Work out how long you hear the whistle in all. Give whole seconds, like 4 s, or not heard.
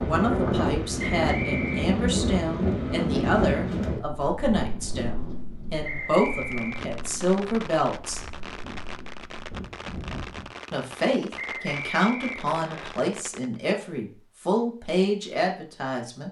3 s.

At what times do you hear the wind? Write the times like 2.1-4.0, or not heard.
0.0-10.5.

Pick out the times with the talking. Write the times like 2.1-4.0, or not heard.
0.0-8.2, 10.7-16.2.